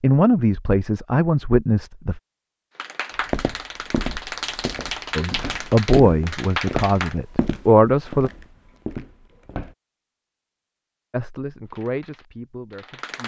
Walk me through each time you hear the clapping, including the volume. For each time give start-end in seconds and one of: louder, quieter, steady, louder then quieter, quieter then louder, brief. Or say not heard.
2.8-7.2 louder
11.7-13.2 brief.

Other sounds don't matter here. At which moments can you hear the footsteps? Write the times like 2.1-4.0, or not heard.
3.1-9.8.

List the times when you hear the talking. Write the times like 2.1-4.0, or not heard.
0.0-2.2, 5.2-8.3, 11.1-13.2.